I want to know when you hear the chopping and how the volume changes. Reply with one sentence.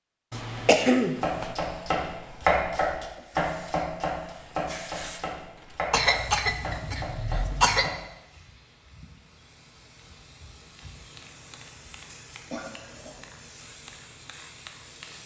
The chopping can be heard from 1.2 to 8.0 s, getting quieter.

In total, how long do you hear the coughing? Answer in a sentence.
The coughing can be heard for 4 seconds in total.